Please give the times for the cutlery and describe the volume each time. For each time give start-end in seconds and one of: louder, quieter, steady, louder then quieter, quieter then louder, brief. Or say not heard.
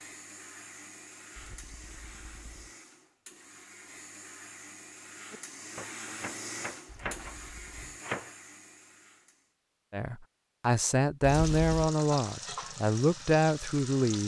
not heard.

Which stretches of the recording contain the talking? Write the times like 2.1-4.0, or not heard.
9.9-14.2.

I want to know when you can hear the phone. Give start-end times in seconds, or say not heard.
not heard.